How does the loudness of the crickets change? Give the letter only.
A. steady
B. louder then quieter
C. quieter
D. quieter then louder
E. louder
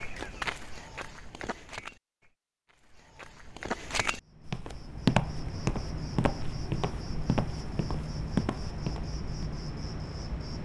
A.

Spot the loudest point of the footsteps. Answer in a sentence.
The loudest moment of the footsteps is at 5 seconds.